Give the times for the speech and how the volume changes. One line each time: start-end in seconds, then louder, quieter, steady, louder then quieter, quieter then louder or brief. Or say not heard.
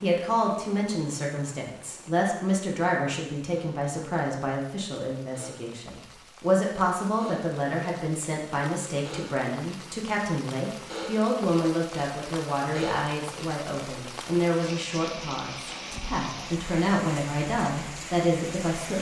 0.0-18.9 steady.